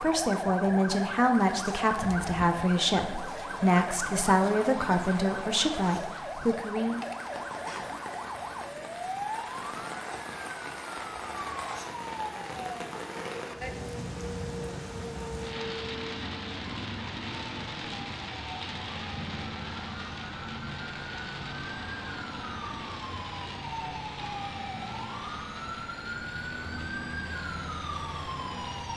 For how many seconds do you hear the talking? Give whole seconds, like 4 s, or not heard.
7 s.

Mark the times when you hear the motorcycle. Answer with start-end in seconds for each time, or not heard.
not heard.